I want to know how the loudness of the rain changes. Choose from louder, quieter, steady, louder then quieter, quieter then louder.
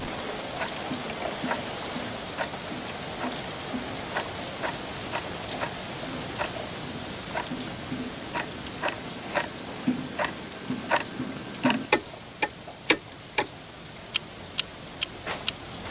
quieter.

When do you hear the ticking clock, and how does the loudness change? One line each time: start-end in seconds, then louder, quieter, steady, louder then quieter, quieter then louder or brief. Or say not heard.
0.0-13.5 louder
14.1-15.8 brief.